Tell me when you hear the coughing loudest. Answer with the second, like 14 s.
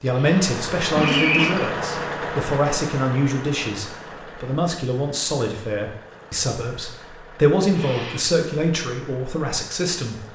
1 s.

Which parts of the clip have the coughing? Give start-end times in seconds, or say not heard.
0.1-1.7, 7.8-8.3.